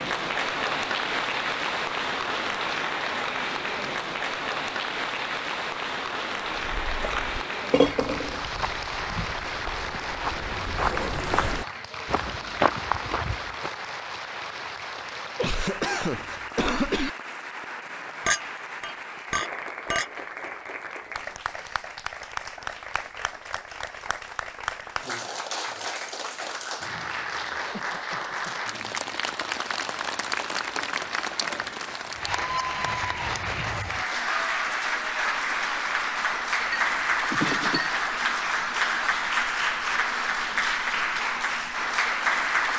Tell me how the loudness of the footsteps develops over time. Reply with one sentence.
The loudness of the footsteps goes up.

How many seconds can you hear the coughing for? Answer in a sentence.
You can hear the coughing for 3 seconds altogether.